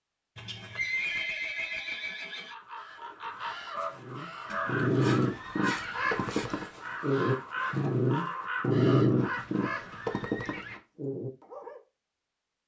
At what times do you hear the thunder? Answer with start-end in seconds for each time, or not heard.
not heard.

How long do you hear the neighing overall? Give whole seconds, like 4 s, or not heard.
6 s.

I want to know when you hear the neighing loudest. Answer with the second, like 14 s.
1 s.